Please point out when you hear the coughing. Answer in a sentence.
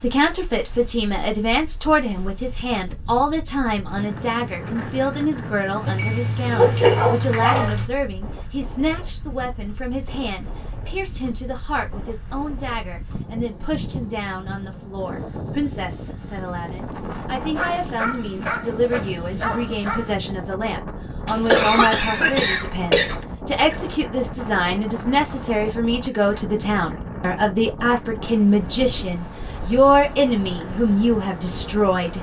You can hear the coughing from 21.2 to 23.2 s.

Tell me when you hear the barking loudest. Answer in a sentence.
The loudest moment of the barking is at 7 seconds.